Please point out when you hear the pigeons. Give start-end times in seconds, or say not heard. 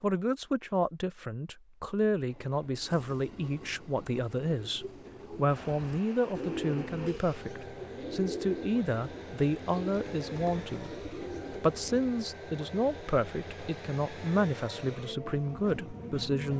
5.5-12.1.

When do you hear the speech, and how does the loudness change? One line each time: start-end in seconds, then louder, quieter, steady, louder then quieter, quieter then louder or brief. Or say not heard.
0.0-16.5 steady.